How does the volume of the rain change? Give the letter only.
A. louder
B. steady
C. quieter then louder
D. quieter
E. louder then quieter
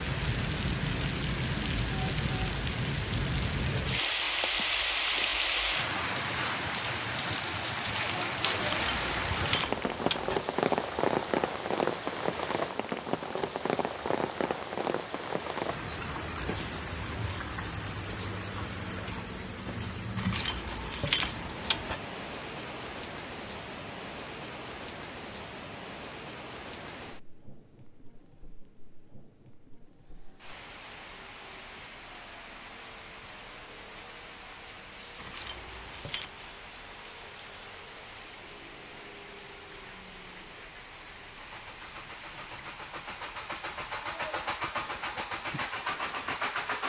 D.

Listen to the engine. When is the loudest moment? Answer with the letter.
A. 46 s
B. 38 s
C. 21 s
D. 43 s
A.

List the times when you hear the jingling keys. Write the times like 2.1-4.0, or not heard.
8.6-10.3, 20.1-21.9, 35.1-36.3.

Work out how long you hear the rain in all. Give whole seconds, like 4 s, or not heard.
47 s.